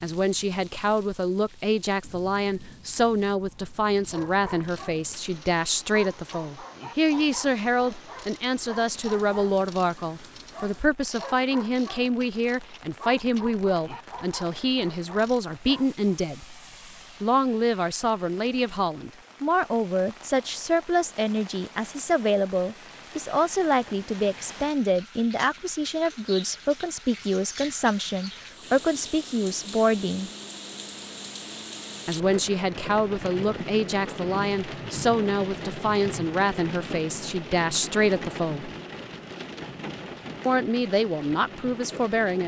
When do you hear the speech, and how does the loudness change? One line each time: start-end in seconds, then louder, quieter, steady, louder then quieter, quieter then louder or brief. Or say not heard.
0.0-16.6 steady
17.2-30.3 steady
32.0-38.7 steady
40.5-42.4 brief.